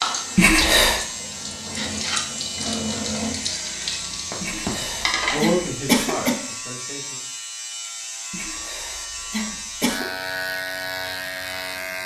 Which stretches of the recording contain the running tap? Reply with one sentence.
The running tap can be heard from 0.0 to 5.5 s.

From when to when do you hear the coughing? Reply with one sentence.
The coughing can be heard from 0.3 to 1.0 s, from 4.4 to 6.3 s and from 8.3 to 10.1 s.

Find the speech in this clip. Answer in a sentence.
You can hear the speech from 5.3 to 7.2 s.